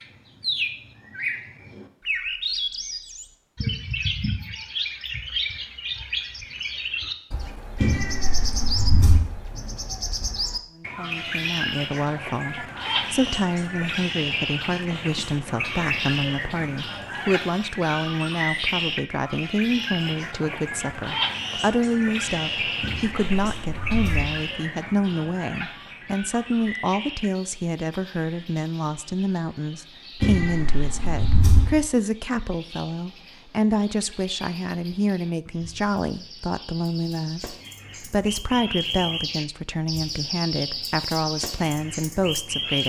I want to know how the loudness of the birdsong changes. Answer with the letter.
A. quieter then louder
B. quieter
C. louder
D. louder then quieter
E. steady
A.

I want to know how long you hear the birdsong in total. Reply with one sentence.
You can hear the birdsong for 43 seconds altogether.